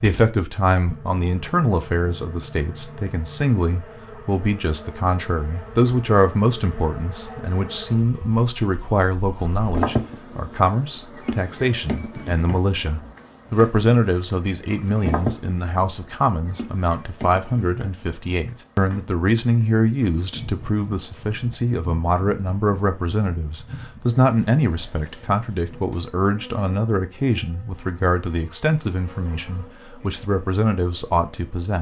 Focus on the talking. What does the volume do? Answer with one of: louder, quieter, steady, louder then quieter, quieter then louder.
steady.